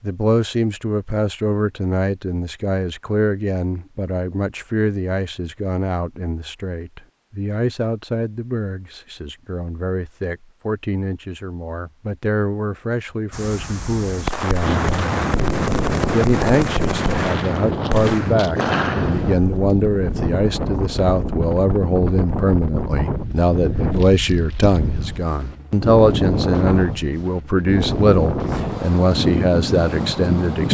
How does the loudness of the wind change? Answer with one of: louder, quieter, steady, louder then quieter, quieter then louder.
steady.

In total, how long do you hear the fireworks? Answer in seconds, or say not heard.
6 s.